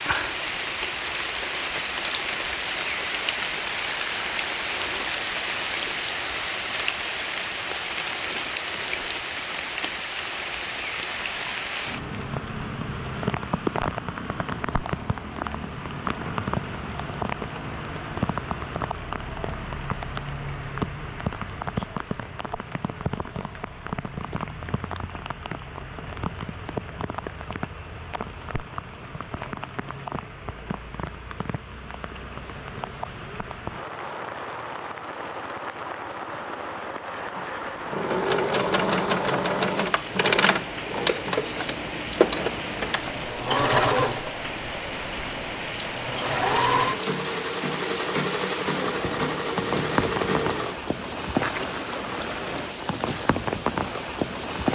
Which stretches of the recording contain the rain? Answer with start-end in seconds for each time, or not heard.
0.0-54.7.